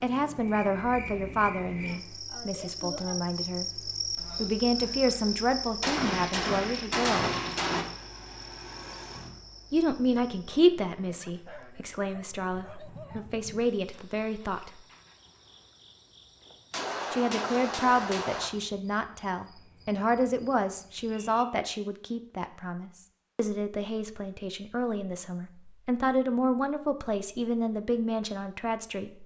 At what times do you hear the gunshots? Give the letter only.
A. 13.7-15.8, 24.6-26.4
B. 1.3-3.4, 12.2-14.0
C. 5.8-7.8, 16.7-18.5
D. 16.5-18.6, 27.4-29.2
C.